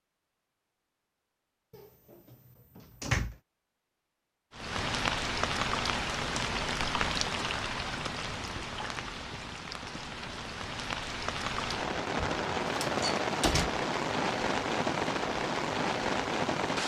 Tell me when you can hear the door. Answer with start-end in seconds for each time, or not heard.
1.7-3.4, 12.7-13.7.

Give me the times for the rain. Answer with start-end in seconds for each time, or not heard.
4.5-16.8.